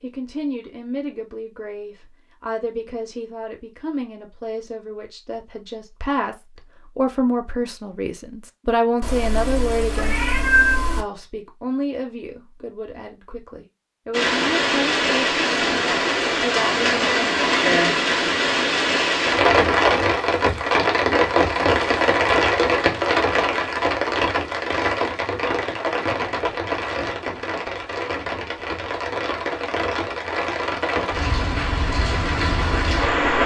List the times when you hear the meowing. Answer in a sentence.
The meowing can be heard from 9.0 to 11.1 s.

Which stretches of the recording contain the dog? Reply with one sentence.
You can't hear the dog here.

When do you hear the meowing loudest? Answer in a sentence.
The volume of the meowing peaks at 11 seconds.